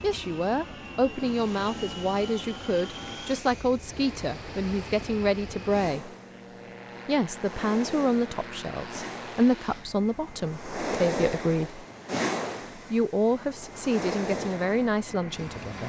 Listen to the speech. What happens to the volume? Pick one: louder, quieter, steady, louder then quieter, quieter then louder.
steady.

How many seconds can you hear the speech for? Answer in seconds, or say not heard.
14 s.